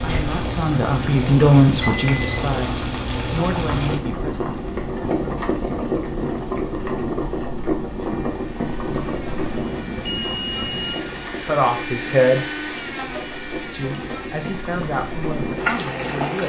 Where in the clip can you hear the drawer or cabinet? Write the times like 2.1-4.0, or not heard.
not heard.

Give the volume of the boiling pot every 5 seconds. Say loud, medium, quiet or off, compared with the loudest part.
loud, loud, medium, loud.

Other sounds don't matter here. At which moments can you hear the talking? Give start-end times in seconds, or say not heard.
0.0-4.5, 11.4-12.4, 13.7-16.4.